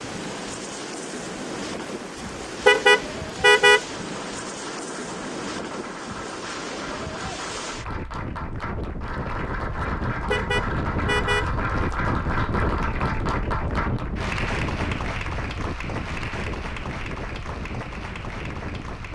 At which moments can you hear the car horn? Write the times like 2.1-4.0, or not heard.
2.6-3.8, 10.3-11.4.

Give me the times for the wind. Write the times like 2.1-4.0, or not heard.
0.0-19.1.